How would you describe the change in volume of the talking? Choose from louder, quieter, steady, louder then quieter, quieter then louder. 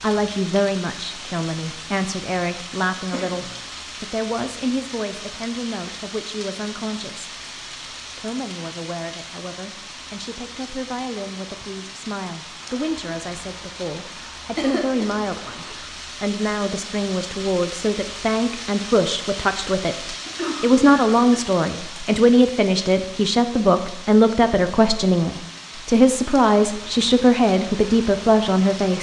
quieter then louder.